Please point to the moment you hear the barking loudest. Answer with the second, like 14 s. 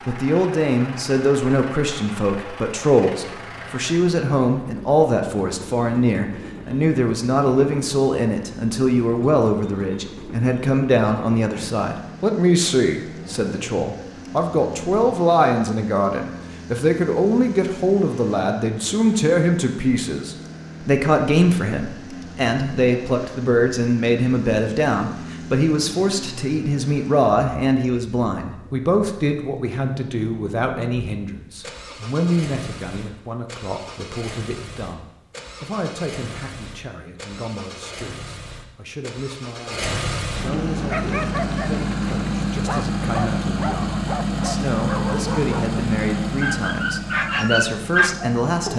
48 s.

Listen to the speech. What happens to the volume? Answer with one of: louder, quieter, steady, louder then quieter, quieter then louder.
quieter.